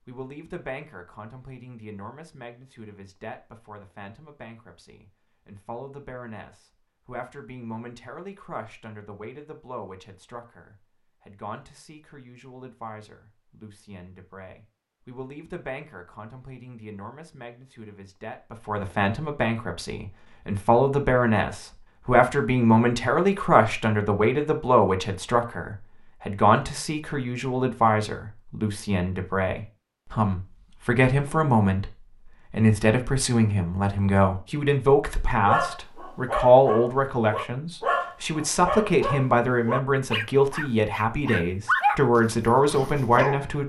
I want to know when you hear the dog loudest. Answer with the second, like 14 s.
42 s.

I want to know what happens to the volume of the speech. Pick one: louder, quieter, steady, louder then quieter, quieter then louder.
louder.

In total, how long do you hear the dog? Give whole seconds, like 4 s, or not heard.
8 s.